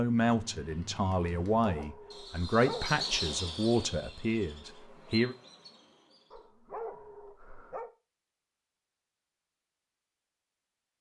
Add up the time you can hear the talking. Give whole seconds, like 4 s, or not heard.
5 s.